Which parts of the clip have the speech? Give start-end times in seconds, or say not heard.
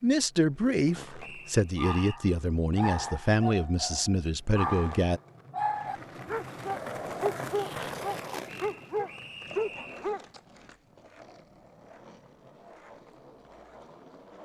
0.0-5.2.